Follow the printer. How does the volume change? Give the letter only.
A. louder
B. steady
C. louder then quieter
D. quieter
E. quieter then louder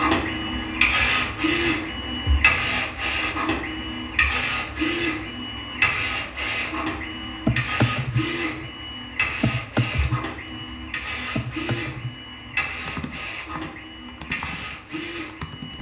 D.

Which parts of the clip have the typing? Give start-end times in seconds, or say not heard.
7.5-8.7, 9.4-10.7, 11.3-15.7.